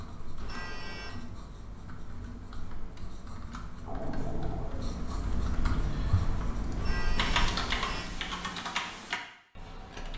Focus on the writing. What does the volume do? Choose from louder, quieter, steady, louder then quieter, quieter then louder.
louder.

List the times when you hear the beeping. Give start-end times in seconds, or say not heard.
0.4-1.2, 6.8-8.1.